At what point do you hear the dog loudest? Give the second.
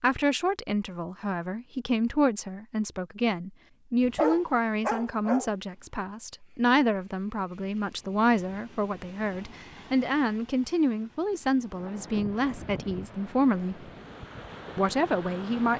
4 s.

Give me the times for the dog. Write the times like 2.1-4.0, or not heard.
4.0-5.5.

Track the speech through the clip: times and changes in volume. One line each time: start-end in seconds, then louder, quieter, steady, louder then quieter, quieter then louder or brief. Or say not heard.
0.0-13.8 steady
14.8-15.7 brief.